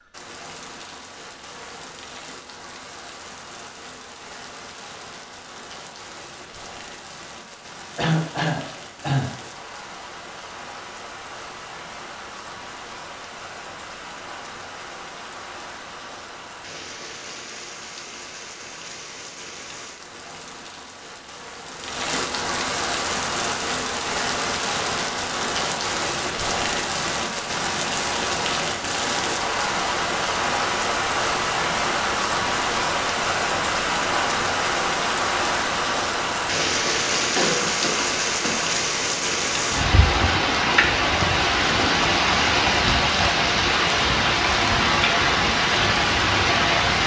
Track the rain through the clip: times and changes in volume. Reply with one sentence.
The rain can be heard from 0.0 to 47.0 s, getting louder.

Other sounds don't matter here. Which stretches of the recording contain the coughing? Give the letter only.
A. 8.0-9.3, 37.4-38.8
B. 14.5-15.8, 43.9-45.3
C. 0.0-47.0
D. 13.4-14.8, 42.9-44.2
A.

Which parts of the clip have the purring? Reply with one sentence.
You can't hear the purring here.